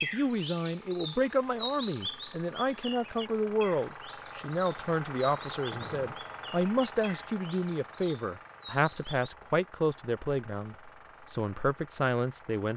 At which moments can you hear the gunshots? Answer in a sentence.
You can hear the gunshots from 5.7 to 6.2 s.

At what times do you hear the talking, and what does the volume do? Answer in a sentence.
You can hear the talking from 0.0 to 12.7 s, at a steady volume.